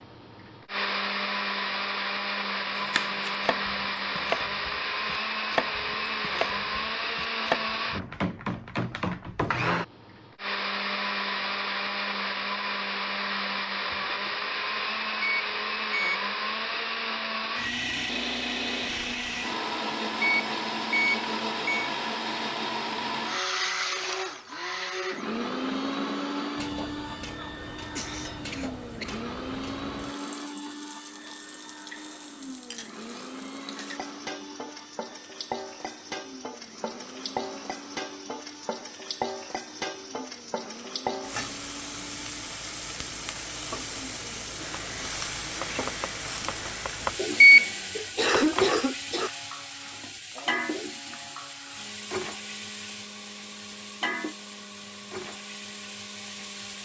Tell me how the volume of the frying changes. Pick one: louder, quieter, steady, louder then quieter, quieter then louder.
louder.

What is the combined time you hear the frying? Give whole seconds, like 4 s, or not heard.
30 s.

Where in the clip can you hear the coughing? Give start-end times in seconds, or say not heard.
13.9-14.3, 27.9-29.1, 47.4-49.3.